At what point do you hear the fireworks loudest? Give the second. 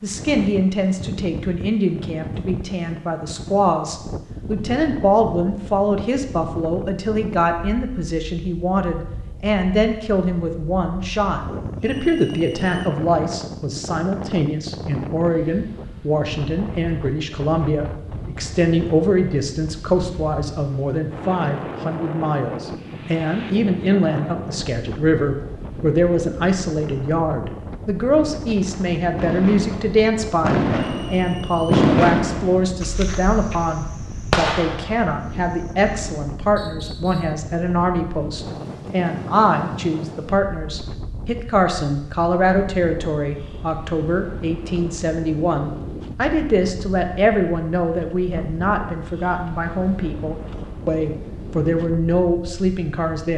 32 s.